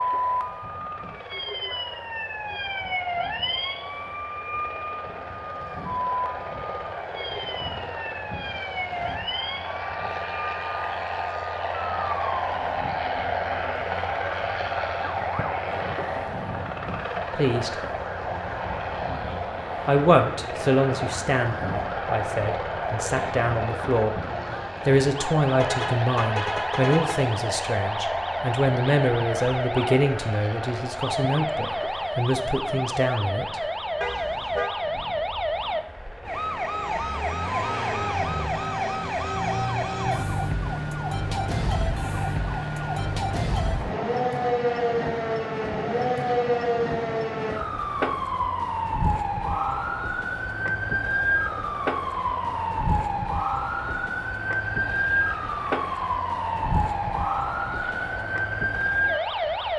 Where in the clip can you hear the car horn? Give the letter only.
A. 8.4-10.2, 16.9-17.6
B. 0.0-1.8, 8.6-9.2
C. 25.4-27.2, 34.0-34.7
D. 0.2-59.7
C.